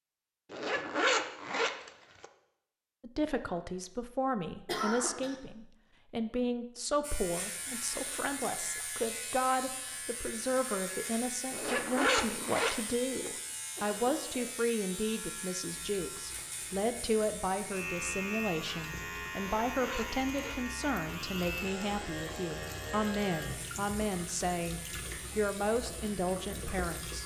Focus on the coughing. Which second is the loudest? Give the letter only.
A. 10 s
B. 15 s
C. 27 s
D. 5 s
D.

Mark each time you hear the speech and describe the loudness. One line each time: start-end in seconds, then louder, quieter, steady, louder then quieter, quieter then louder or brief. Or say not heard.
3.0-27.2 steady.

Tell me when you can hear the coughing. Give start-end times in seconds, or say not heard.
4.7-5.3, 13.8-14.6.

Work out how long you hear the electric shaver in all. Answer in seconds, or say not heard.
20 s.